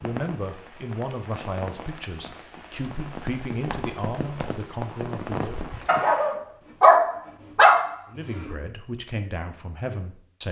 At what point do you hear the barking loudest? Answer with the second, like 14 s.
7 s.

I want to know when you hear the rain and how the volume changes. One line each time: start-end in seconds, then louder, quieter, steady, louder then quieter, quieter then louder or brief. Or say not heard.
0.0-6.4 louder.